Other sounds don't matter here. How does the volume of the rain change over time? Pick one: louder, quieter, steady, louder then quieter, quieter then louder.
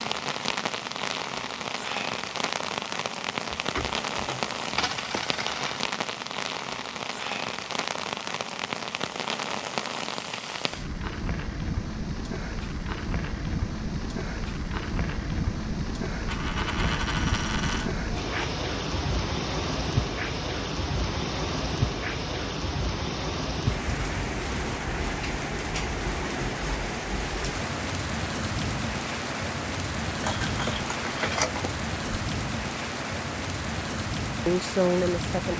steady.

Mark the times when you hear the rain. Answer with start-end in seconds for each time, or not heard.
0.0-35.5.